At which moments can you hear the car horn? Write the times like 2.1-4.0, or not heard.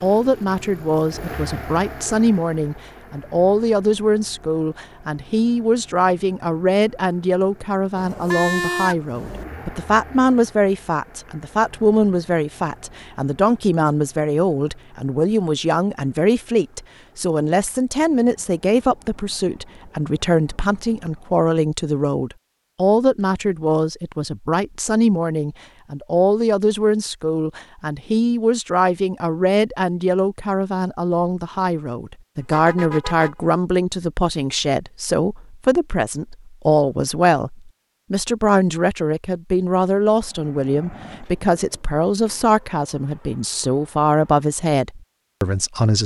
8.0-9.4, 32.4-33.5.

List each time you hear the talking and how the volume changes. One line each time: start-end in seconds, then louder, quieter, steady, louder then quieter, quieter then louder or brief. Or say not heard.
0.0-46.0 steady.